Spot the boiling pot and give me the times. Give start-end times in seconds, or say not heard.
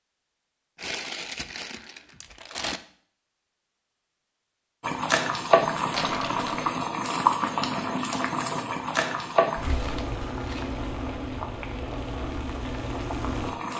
4.8-13.7.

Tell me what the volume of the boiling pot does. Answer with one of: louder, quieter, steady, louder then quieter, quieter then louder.
quieter.